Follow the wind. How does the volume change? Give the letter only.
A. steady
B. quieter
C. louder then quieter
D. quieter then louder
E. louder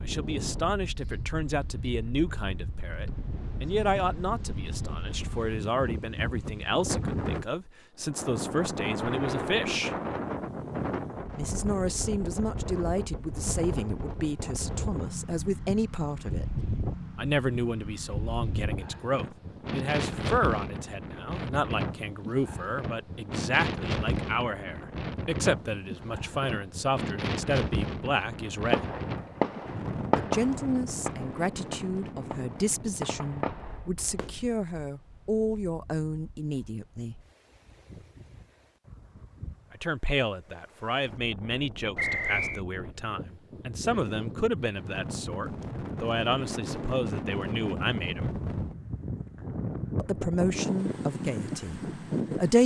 D.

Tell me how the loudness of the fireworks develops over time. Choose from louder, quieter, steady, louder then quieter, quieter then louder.
quieter then louder.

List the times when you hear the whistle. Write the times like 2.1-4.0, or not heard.
42.0-42.6.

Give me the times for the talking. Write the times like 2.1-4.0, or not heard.
0.0-9.9, 11.3-16.4, 17.1-28.9, 30.1-37.1, 39.7-48.4, 50.0-52.6.